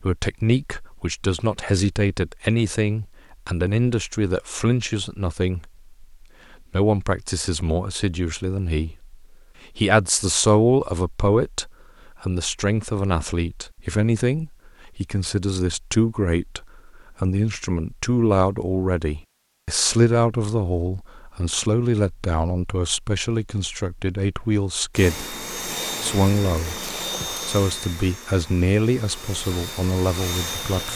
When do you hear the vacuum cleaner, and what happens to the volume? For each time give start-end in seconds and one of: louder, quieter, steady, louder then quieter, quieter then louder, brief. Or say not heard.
24.9-30.9 quieter then louder.